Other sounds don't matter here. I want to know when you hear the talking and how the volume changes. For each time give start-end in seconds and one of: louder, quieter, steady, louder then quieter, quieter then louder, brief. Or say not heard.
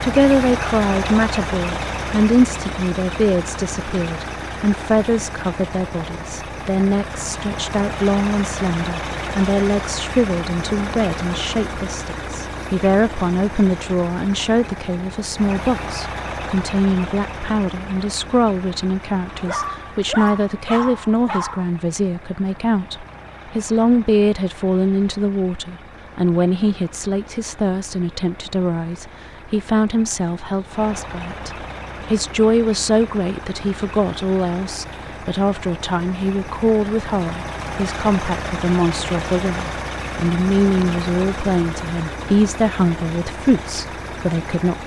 0.0-44.8 steady.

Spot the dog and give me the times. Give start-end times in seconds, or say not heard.
19.2-21.7.